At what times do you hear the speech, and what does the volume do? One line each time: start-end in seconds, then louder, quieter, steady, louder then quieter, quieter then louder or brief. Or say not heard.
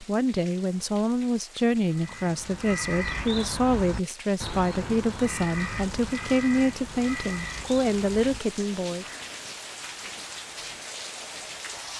0.0-9.1 steady.